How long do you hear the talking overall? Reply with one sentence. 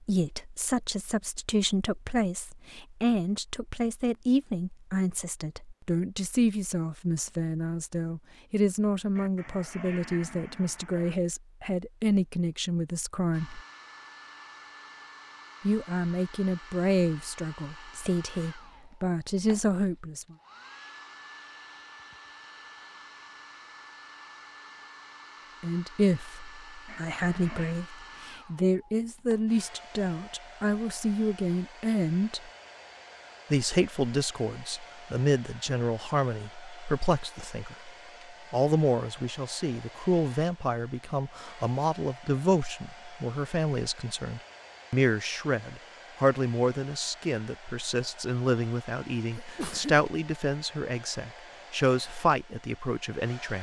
You can hear the talking for 45 seconds altogether.